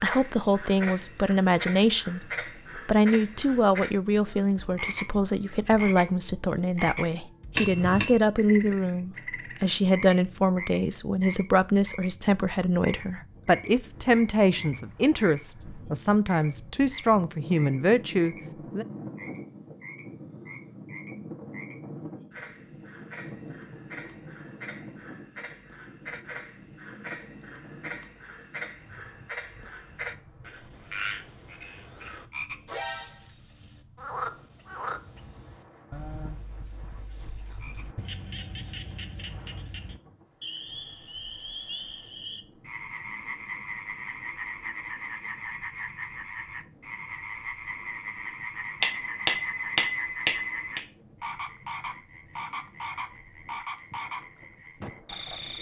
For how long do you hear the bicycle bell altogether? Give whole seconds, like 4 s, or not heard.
3 s.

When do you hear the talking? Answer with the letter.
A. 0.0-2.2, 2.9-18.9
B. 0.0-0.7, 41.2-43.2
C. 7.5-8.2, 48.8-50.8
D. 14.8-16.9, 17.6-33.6
A.